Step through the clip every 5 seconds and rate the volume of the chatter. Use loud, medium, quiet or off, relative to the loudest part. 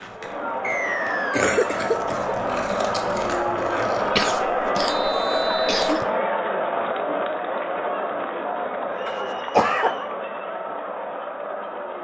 loud, loud, medium.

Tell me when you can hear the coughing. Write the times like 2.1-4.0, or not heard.
1.1-2.4, 4.2-6.0, 9.1-9.9.